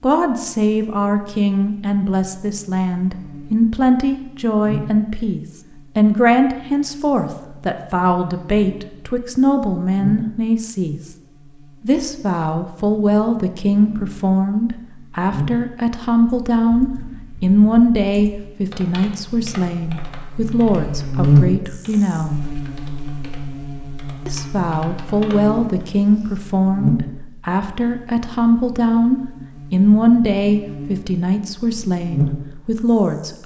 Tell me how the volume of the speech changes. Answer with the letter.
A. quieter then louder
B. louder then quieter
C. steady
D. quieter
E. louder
C.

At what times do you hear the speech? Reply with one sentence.
The speech can be heard from 0.0 to 11.0 s, from 11.8 to 22.6 s and from 24.2 to 33.4 s.